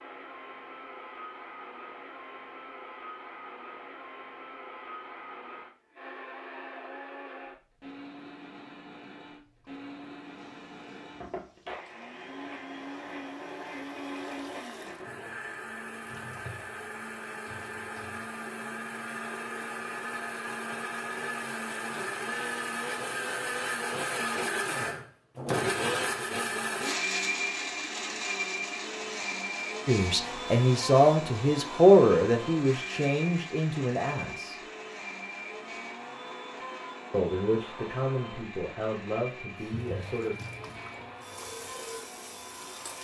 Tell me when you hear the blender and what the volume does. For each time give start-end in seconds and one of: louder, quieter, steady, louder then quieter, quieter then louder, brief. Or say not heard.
0.0-42.9 louder then quieter.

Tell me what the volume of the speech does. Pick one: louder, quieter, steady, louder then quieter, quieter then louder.
quieter.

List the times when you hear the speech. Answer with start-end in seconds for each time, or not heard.
29.9-34.6, 37.1-40.4.